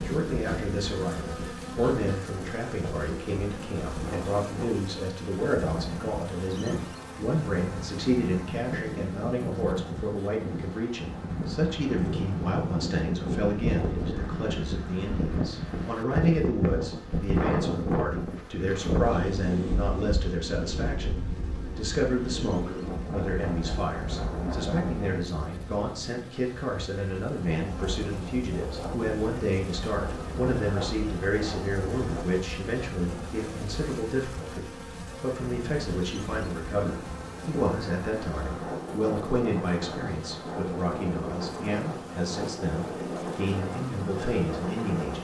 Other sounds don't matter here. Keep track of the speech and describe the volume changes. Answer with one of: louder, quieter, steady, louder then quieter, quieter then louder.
steady.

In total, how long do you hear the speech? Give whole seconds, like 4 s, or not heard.
45 s.